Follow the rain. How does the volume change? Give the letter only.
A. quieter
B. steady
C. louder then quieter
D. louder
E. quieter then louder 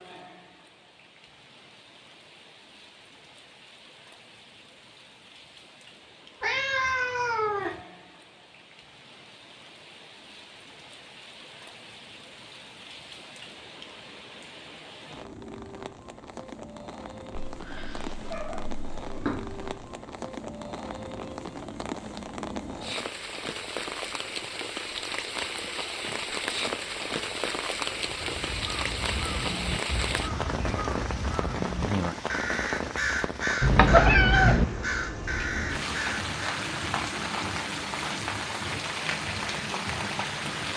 D.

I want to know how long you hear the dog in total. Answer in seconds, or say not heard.
not heard.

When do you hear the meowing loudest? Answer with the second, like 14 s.
34 s.